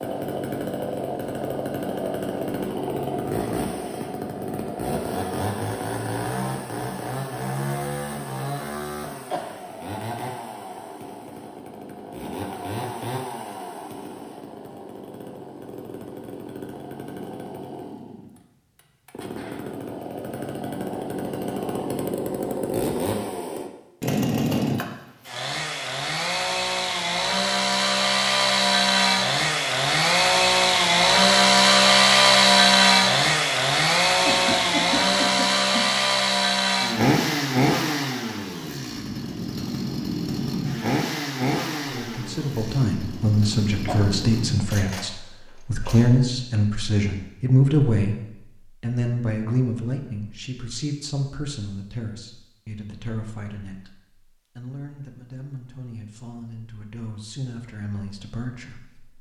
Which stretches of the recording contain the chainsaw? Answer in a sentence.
The chainsaw can be heard from 0.0 to 46.1 s.